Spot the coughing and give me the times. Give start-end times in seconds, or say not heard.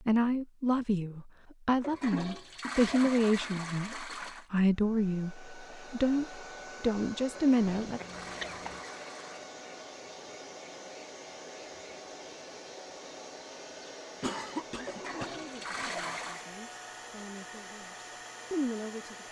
2.1-3.6, 7.8-8.8, 14.2-15.8.